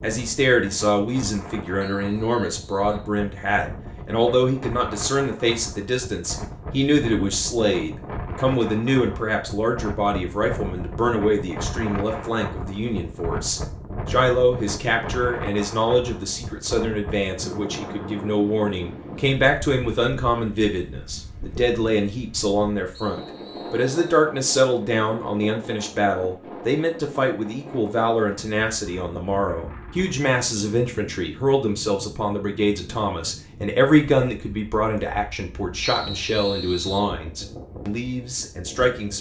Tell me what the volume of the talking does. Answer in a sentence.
The loudness of the talking stays about the same.